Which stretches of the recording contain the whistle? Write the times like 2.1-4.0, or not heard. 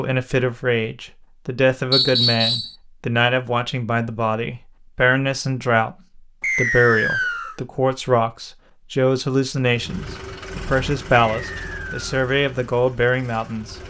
1.9-2.8, 6.4-7.5, 11.3-12.0.